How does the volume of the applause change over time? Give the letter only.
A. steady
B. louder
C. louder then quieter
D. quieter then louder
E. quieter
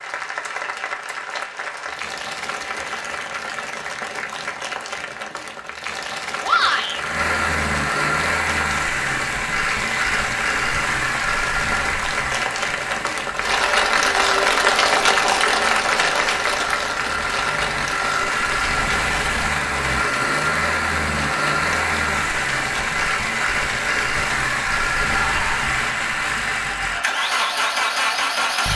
C.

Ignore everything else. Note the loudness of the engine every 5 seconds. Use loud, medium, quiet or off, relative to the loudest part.
off, loud, loud, loud, loud, loud.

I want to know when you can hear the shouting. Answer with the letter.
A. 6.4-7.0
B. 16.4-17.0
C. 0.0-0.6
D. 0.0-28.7
A.